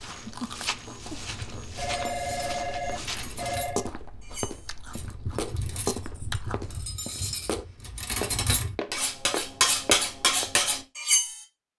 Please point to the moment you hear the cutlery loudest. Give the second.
10 s.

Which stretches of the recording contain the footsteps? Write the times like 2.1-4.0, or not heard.
0.0-10.5.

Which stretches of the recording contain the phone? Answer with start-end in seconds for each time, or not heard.
1.8-3.9.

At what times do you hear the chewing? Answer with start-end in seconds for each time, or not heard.
0.1-6.9.